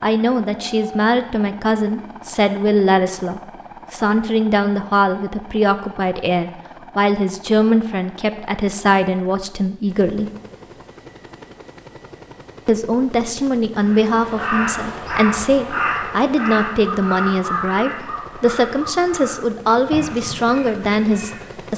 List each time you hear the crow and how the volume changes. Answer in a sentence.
You can hear the crow from 13.8 to 21.6 s, getting quieter.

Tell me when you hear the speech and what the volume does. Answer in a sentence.
You can hear the speech from 0.0 to 10.3 s, at a steady volume; and from 12.7 to 21.7 s, at a steady volume.